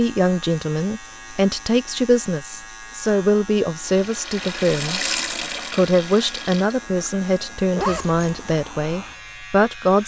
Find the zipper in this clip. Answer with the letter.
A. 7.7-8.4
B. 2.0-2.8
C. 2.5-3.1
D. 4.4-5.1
A.